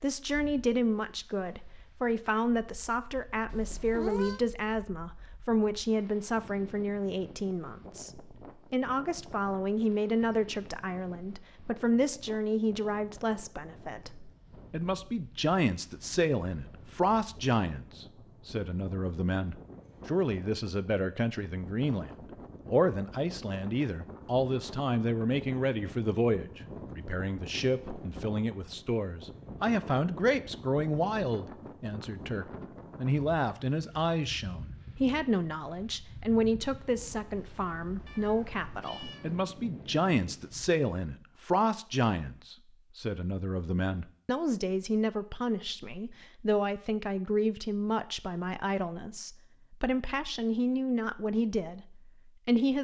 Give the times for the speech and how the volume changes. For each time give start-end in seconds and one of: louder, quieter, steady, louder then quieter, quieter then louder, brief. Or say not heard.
0.0-52.7 steady.